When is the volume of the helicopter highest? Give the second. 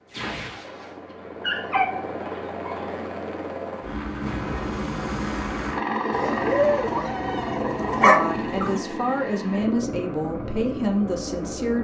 6 s.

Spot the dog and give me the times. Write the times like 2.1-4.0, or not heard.
1.1-2.9, 6.1-8.8.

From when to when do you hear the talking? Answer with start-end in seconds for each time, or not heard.
8.0-11.7.